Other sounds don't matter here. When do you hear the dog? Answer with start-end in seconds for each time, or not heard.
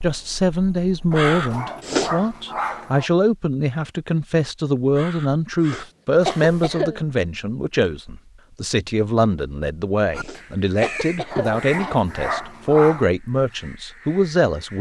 1.1-3.1, 11.3-13.1.